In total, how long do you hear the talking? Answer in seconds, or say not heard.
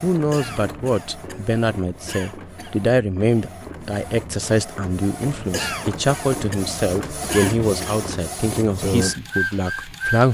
10 s.